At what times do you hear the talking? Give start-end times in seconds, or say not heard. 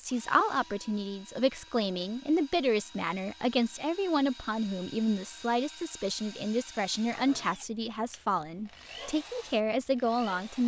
0.0-10.6.